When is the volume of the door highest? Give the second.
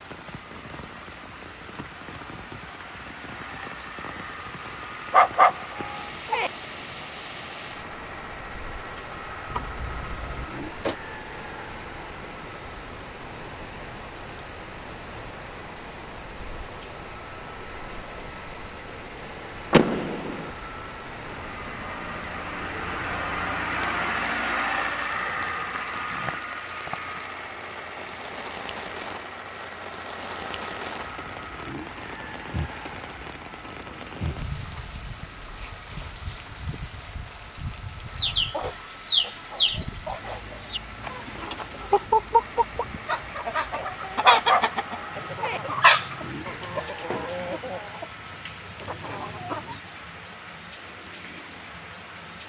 20 s.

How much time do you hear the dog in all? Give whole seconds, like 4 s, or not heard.
3 s.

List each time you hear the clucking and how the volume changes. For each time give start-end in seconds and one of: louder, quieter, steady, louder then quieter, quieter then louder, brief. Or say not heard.
38.1-49.8 quieter.